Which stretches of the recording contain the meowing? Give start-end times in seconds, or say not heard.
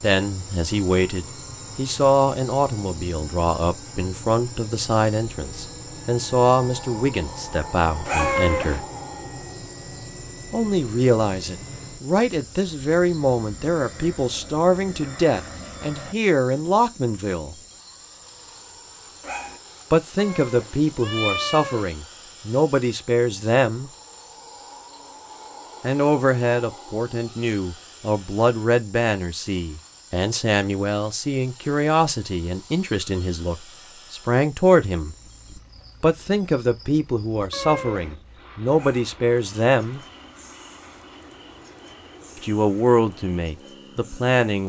8.2-8.8, 20.1-21.9, 37.5-38.2.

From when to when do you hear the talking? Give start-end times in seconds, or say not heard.
0.0-8.8, 10.5-17.6, 19.9-23.9, 25.8-35.1, 36.0-40.0, 42.4-44.6.